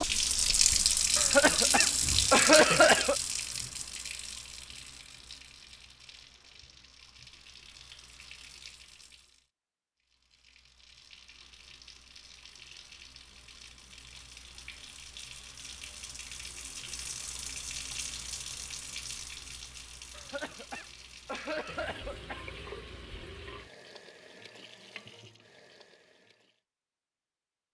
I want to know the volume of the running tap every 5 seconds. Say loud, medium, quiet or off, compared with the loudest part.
loud, quiet, quiet, quiet, quiet, quiet.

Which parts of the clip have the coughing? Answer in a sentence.
You can hear the coughing from 1.1 to 3.1 s and from 20.1 to 22.4 s.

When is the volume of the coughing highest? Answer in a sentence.
The volume of the coughing peaks at 3 seconds.